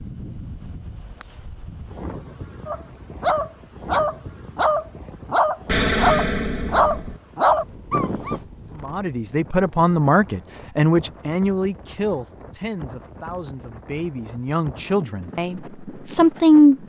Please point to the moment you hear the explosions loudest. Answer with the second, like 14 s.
6 s.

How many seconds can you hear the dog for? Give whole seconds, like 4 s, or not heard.
6 s.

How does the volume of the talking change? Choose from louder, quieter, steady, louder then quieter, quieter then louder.
quieter then louder.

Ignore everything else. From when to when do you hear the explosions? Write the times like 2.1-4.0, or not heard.
5.7-7.2.